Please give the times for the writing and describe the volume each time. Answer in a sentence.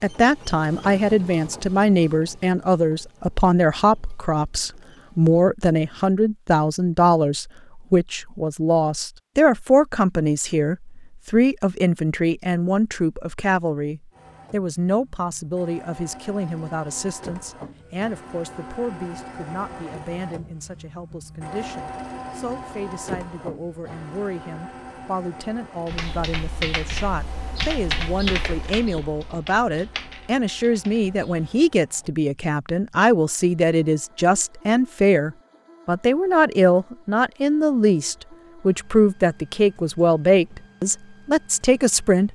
The writing can't be heard in this clip.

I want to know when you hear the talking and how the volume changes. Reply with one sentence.
The talking can be heard from 0.0 to 42.3 s, getting quieter then louder.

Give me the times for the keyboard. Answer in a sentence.
You can hear the keyboard from 25.9 to 31.6 s.